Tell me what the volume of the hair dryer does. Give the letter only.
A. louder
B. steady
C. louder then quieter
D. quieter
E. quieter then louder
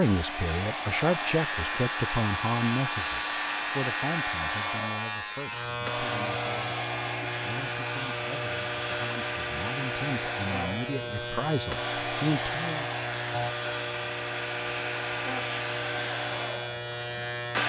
B.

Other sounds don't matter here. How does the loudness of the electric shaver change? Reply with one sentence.
The loudness of the electric shaver stays about the same.